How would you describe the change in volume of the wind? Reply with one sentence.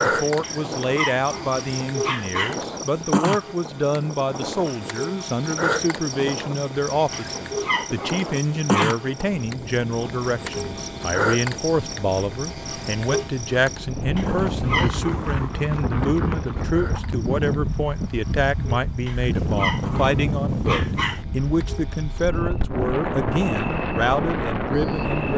The volume of the wind goes up.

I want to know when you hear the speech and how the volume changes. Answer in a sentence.
The speech can be heard from 0.0 to 25.3 s, at a steady volume.